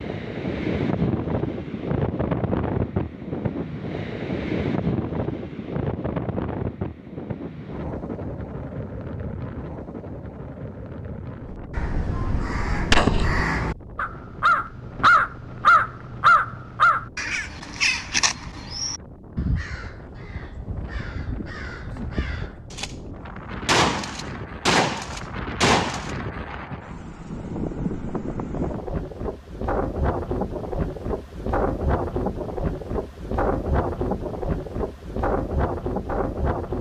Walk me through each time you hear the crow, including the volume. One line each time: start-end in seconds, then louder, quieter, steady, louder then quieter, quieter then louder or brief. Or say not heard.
11.5-22.6 louder then quieter.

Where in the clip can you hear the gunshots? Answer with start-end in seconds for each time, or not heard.
11.8-13.4, 22.7-26.1.